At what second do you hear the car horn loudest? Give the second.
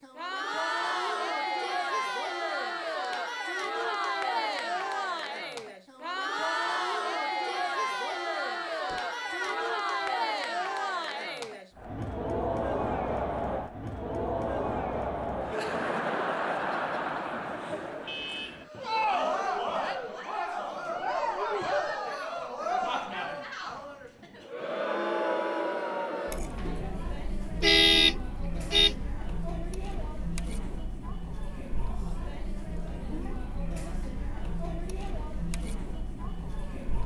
28 s.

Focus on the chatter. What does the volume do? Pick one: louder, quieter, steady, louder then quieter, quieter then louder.
quieter.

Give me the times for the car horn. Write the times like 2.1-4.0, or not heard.
8.8-10.2, 18.1-18.6, 27.6-28.9.